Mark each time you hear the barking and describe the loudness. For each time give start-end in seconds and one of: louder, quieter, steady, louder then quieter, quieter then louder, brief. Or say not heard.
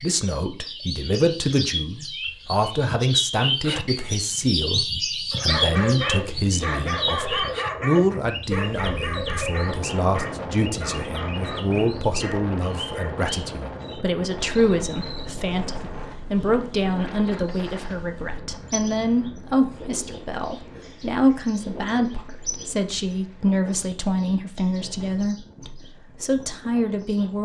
5.3-13.2 quieter.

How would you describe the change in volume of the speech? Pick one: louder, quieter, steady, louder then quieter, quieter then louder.
steady.